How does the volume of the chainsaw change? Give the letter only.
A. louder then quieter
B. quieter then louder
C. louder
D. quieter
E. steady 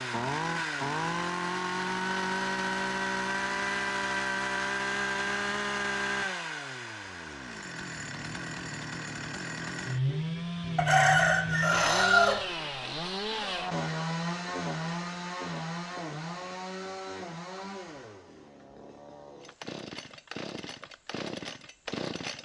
D.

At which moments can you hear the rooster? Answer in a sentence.
You can hear the rooster from 10.8 to 12.4 s.